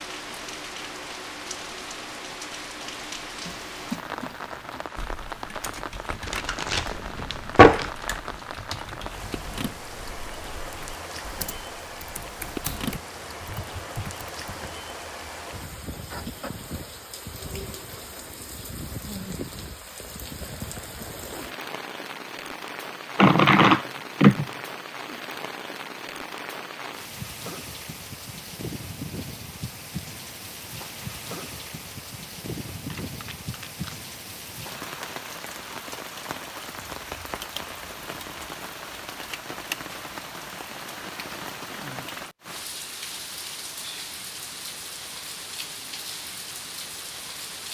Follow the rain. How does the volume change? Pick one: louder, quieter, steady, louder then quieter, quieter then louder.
steady.